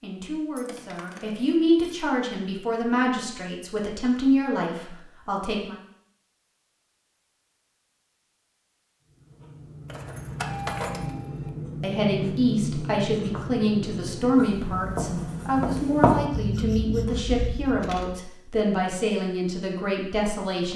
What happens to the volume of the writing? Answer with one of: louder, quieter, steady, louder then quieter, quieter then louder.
louder.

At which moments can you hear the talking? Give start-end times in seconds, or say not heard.
0.0-5.8, 11.8-20.7.